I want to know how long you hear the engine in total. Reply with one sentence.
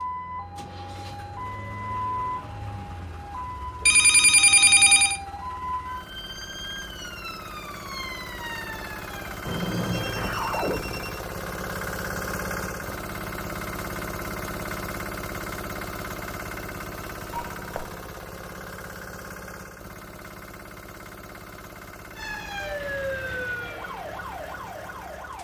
The engine can be heard for 25 seconds in total.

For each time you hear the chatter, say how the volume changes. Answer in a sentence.
You can't hear the chatter here.